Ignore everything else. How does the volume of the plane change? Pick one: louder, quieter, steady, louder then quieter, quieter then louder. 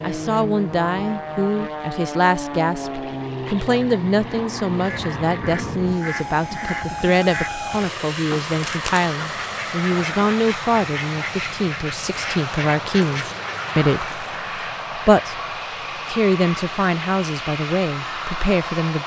steady.